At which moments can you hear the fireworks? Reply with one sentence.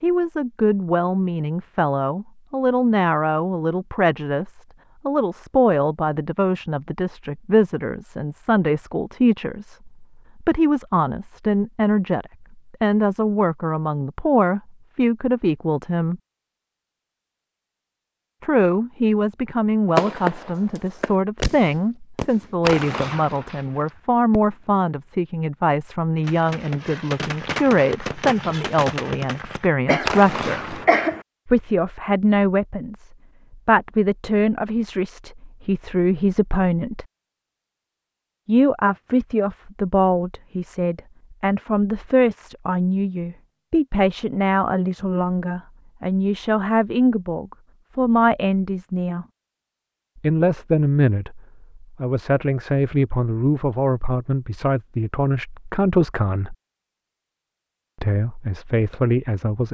The fireworks can be heard from 19.9 to 24.8 s and from 26.2 to 30.9 s.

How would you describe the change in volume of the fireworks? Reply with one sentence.
The volume of the fireworks goes down, then up.